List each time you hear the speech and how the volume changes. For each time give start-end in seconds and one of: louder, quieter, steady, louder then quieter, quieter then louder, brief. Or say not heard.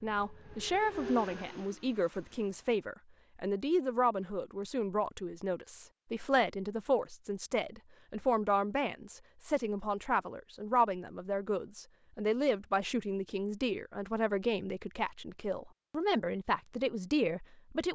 0.0-17.9 steady.